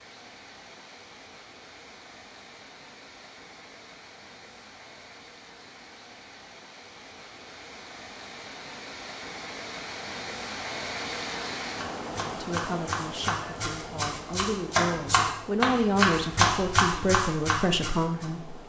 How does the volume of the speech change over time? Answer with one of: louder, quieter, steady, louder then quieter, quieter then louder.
louder.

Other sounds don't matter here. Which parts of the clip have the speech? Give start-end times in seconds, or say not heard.
12.2-18.6.